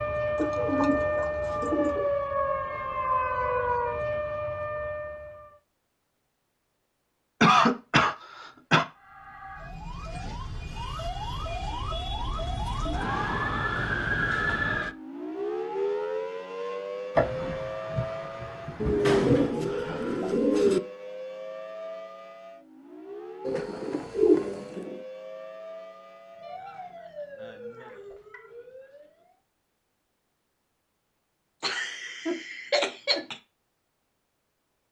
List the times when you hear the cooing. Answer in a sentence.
You can hear the cooing from 0.3 to 2.1 s, from 18.8 to 20.8 s and from 23.4 to 25.0 s.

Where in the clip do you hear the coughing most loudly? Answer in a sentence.
The volume of the coughing peaks at 8 seconds.